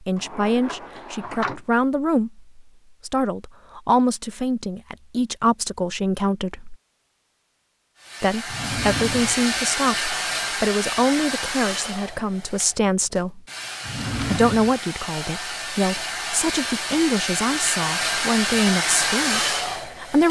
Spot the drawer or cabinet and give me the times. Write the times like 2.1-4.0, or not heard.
0.1-1.6, 8.4-9.4, 13.8-14.8.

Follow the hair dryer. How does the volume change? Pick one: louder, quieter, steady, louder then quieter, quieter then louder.
quieter then louder.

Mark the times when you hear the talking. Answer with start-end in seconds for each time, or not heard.
0.0-6.8, 8.2-13.4, 14.2-20.2.